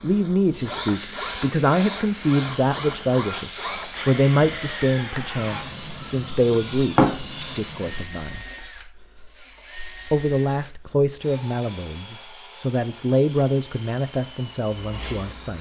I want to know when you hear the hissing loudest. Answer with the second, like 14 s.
7 s.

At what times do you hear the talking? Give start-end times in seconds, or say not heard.
0.0-8.4, 10.1-15.5.